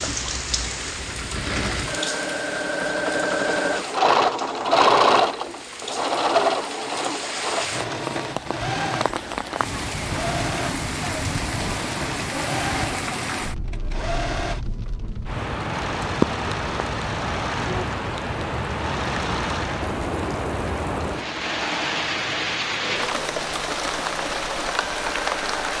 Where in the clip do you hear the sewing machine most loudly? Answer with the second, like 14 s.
5 s.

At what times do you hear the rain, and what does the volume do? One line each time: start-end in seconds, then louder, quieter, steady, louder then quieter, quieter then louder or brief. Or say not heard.
0.0-25.7 louder.